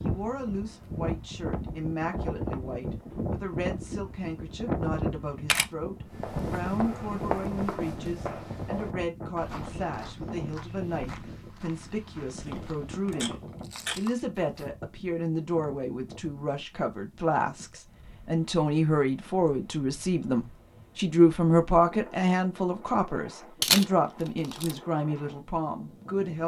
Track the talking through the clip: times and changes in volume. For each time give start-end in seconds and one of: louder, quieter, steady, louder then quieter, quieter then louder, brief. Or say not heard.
0.0-26.4 louder.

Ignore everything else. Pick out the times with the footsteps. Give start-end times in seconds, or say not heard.
6.0-14.7.